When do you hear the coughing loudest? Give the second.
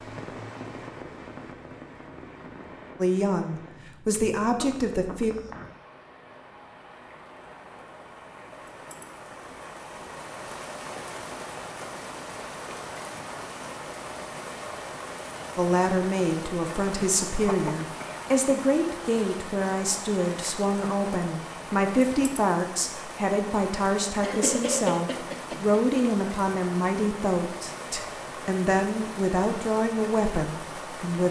25 s.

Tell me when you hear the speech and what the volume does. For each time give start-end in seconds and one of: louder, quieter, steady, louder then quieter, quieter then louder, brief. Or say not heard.
3.0-5.3 brief
15.6-31.2 steady.